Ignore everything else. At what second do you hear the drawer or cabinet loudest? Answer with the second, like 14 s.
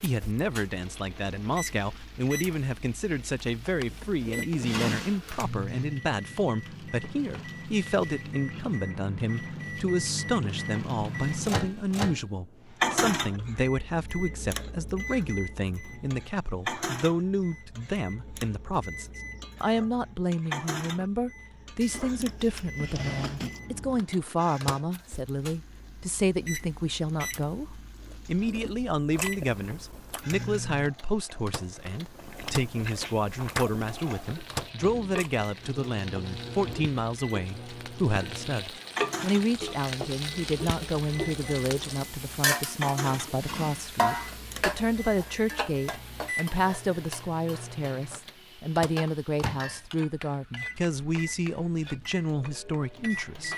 5 s.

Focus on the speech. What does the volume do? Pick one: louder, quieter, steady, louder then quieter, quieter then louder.
steady.